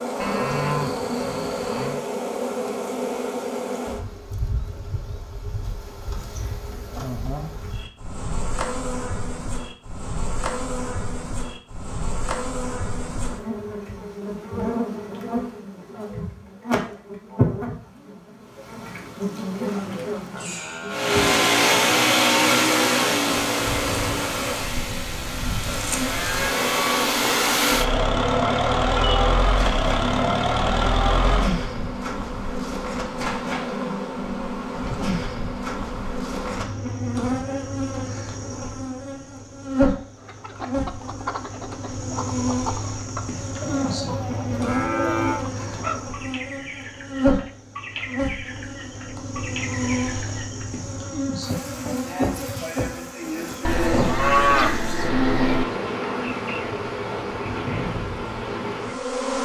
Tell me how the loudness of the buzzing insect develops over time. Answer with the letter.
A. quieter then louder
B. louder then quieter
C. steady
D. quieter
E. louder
C.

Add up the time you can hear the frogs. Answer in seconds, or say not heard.
not heard.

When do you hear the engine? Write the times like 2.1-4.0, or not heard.
20.9-31.6.